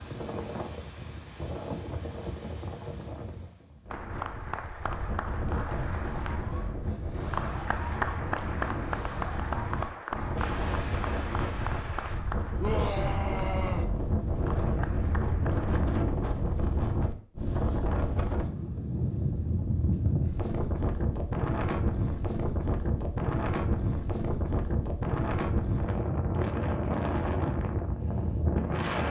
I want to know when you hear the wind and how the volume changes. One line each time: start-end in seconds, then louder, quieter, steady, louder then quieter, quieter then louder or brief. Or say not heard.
0.0-29.0 louder.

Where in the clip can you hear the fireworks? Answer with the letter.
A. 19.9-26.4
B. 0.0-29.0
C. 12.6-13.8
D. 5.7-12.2
D.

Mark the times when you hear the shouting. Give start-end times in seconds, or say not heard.
12.6-13.8.